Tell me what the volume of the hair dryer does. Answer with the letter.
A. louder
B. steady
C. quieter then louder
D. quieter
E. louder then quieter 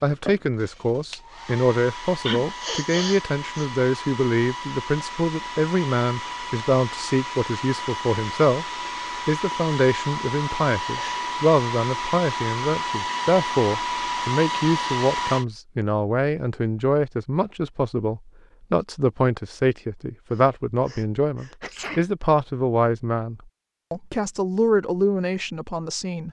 A.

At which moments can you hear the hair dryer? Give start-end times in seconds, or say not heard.
0.0-15.4.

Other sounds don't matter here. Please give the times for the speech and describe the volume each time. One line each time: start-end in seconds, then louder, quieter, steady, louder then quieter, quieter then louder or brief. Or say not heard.
0.0-8.7 steady
9.2-26.2 steady.